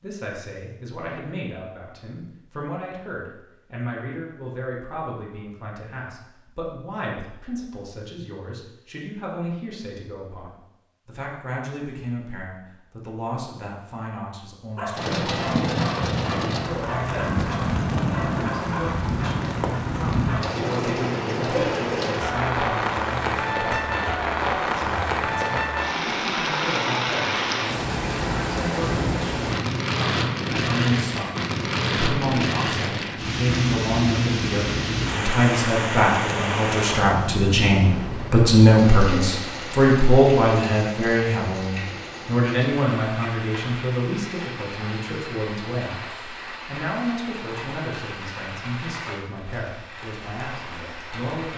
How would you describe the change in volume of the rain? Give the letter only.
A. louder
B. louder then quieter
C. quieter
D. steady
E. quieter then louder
C.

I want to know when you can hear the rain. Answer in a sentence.
The rain can be heard from 14.9 to 51.5 s.